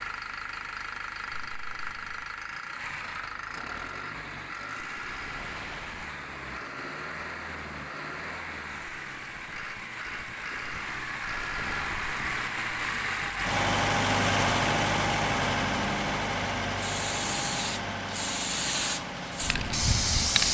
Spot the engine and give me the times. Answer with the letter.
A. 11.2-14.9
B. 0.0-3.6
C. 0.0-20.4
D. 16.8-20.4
C.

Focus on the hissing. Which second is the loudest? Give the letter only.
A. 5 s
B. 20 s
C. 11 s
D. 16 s
B.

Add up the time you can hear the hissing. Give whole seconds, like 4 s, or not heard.
4 s.